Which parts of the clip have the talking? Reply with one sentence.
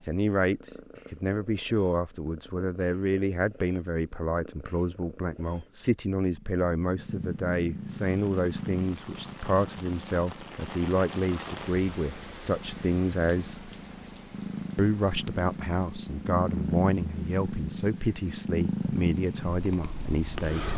You can hear the talking from 0.0 to 13.7 s and from 14.8 to 20.7 s.